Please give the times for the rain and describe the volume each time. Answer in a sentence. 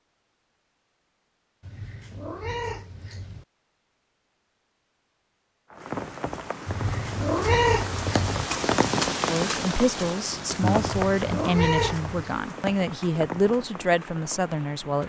The rain can be heard from 5.7 to 15.0 s, getting louder then quieter.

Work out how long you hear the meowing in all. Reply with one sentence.
You can hear the meowing for 5 seconds altogether.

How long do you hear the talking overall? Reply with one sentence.
You can hear the talking for 6 seconds altogether.